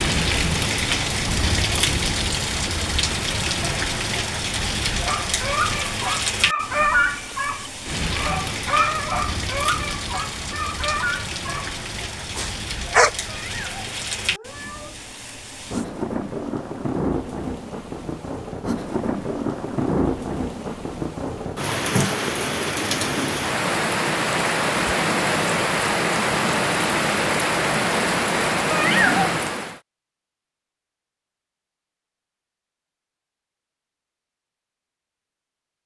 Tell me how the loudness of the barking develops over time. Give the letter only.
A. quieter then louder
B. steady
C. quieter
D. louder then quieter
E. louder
C.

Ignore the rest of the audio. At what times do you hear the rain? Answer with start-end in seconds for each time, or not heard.
0.0-29.8.